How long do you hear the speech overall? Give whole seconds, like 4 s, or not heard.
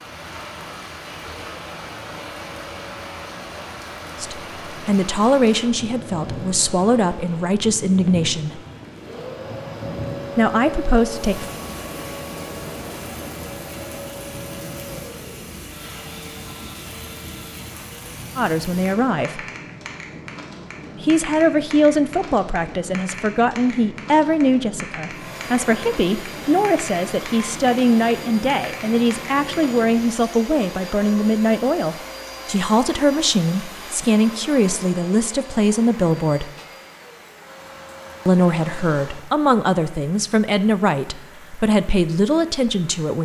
27 s.